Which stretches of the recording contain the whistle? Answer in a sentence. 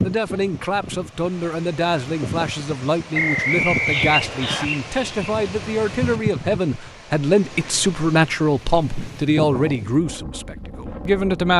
The whistle can be heard from 3.1 to 4.7 s.